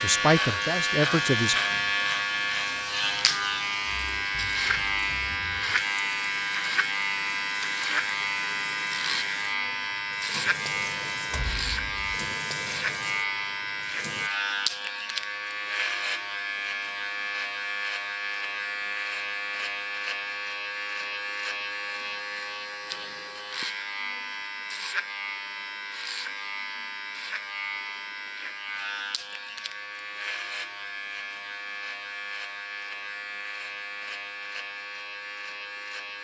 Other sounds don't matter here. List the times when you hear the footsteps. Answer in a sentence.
The footsteps can't be heard in this clip.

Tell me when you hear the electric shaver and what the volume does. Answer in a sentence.
The electric shaver can be heard from 0.0 to 36.1 s, getting quieter.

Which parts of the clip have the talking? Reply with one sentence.
You can hear the talking from 0.0 to 1.6 s.